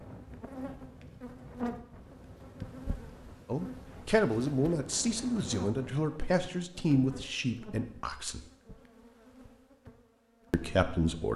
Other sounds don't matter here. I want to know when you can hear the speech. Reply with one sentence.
The speech can be heard from 3.5 to 8.4 s and from 10.5 to 11.3 s.